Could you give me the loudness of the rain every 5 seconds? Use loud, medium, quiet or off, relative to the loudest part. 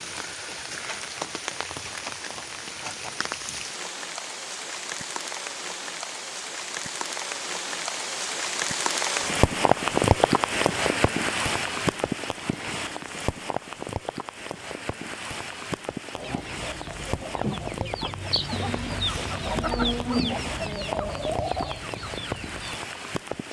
medium, loud, loud, medium, medium.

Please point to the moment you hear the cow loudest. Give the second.
20 s.